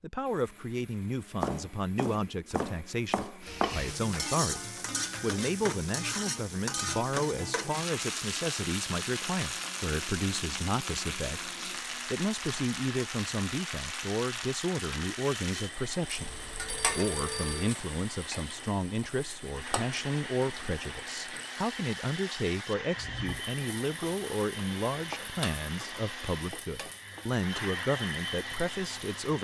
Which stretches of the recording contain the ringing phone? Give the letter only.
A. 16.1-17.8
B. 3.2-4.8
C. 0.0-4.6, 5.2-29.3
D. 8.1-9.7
A.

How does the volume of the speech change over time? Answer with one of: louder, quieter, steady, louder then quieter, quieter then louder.
steady.